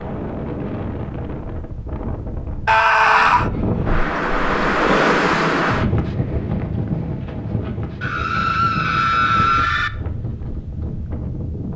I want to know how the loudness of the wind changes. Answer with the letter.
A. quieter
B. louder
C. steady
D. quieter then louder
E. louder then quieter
E.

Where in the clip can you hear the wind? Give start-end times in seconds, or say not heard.
0.0-11.7.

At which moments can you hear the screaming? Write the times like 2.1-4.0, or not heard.
2.6-3.5, 8.0-9.9.